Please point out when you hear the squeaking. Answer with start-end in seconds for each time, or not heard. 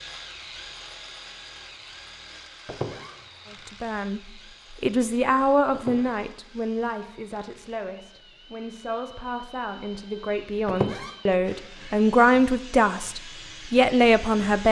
2.6-3.1, 5.7-6.2, 10.7-11.2.